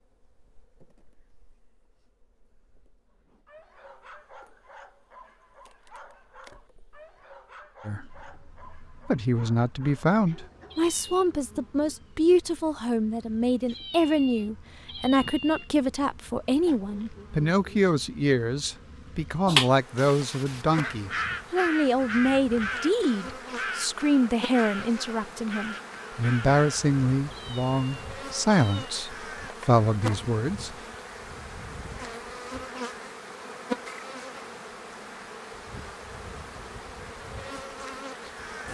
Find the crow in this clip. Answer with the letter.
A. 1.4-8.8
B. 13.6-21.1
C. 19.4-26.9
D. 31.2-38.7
C.